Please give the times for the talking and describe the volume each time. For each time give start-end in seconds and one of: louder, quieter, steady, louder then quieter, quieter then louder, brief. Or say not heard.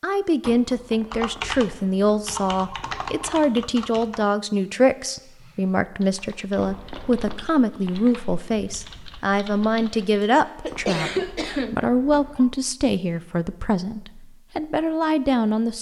0.0-15.7 steady.